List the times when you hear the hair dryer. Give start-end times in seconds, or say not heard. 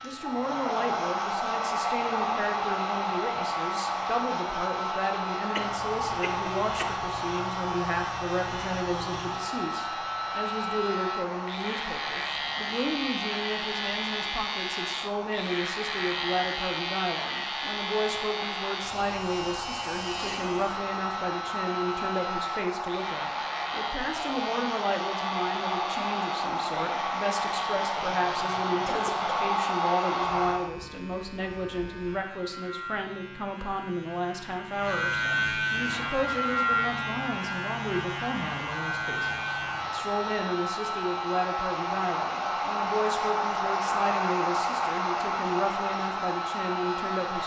0.0-30.7, 35.9-47.4.